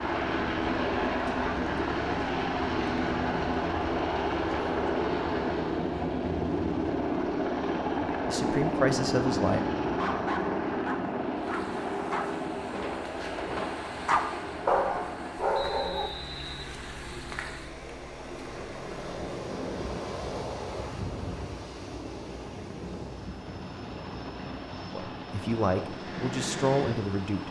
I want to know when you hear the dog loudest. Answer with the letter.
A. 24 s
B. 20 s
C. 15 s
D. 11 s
C.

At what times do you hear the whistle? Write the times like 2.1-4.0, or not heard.
15.5-16.8.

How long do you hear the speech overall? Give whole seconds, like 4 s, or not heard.
4 s.